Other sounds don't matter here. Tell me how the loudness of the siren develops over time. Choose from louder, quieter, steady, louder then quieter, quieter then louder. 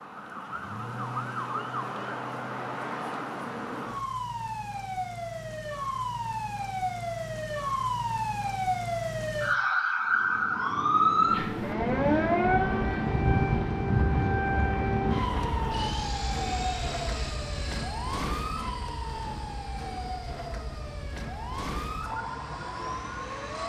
louder then quieter.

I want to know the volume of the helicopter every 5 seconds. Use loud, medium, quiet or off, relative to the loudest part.
off, off, loud, medium, quiet.